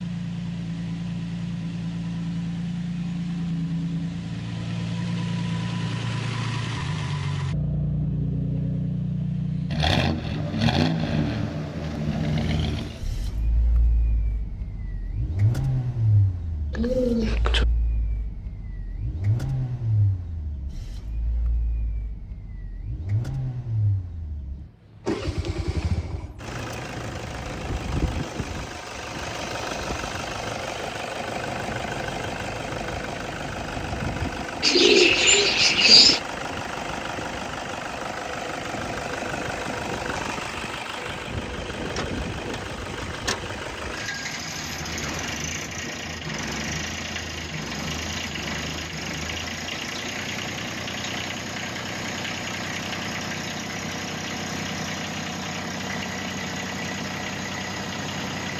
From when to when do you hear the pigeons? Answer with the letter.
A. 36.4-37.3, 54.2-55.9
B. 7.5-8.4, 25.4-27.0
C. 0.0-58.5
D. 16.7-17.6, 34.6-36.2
D.